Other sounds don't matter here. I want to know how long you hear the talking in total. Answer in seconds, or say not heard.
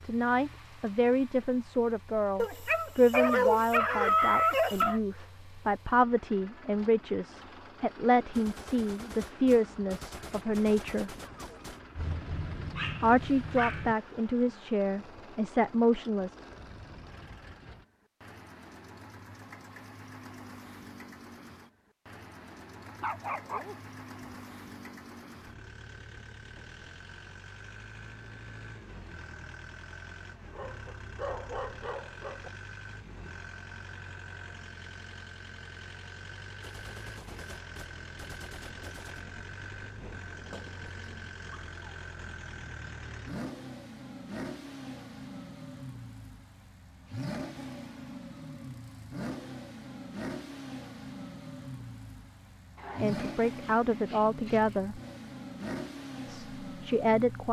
18 s.